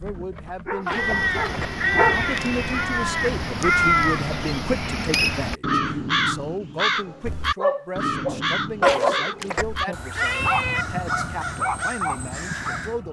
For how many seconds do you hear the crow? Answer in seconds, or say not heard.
12 s.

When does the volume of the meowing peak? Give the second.
9 s.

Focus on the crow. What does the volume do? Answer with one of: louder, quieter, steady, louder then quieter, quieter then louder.
quieter.